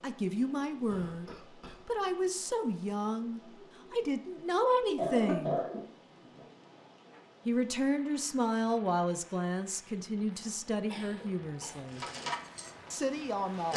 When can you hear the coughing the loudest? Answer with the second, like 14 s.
5 s.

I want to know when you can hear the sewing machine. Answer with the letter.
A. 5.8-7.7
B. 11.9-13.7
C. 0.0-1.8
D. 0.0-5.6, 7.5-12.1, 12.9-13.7
B.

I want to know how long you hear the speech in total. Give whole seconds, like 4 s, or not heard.
11 s.